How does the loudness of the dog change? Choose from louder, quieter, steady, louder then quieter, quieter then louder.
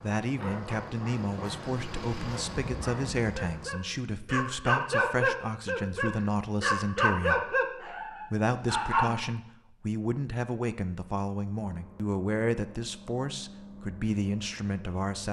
louder.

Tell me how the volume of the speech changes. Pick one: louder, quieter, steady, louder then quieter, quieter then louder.
steady.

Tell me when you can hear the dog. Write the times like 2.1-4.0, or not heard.
0.3-9.2.